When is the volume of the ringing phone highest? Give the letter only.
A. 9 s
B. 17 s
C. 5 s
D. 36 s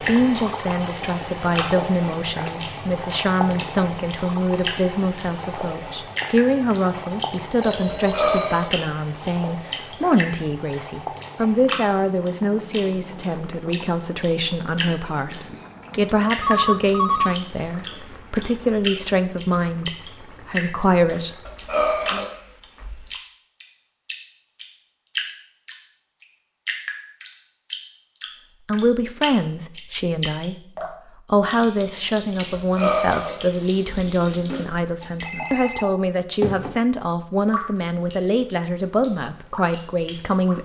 B.